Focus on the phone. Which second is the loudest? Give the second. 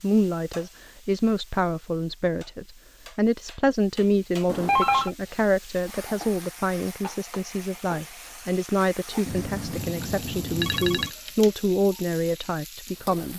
5 s.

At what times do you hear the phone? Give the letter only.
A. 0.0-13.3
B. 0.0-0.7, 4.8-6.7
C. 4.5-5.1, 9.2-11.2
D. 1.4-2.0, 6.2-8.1
C.